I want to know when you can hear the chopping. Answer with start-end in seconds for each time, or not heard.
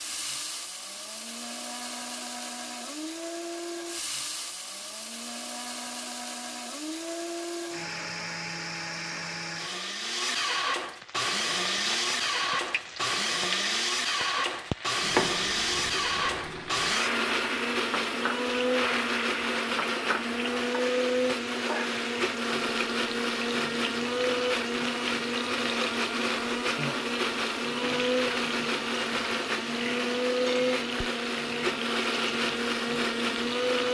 not heard.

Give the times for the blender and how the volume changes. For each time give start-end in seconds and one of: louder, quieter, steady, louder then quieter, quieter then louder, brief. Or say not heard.
0.0-33.8 louder.